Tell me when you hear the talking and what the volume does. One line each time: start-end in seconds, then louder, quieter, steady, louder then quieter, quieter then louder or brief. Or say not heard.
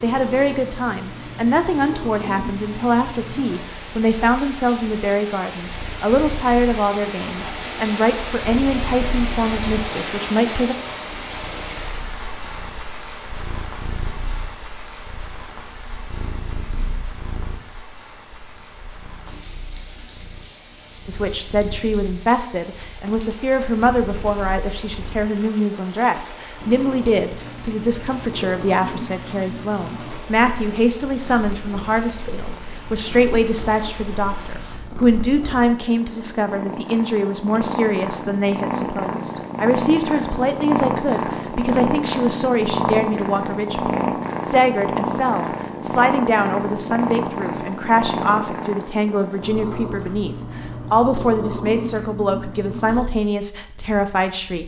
0.0-10.8 steady
21.1-54.6 steady.